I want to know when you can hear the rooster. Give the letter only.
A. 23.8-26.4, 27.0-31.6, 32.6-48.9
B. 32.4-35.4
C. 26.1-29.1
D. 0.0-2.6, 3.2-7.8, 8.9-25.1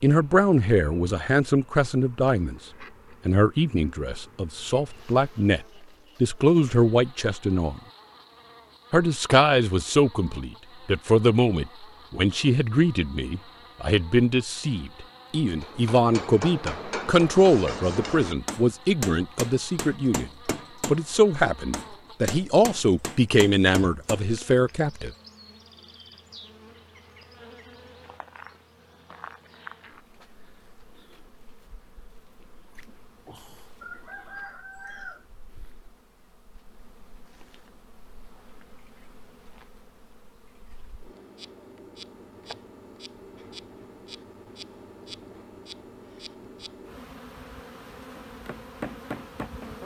B.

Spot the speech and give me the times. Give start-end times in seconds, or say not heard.
0.0-2.6, 3.2-7.8, 8.9-25.1.